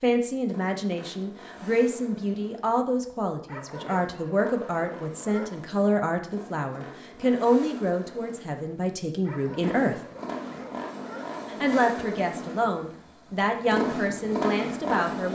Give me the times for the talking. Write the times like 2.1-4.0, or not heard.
0.0-10.0, 11.5-15.2.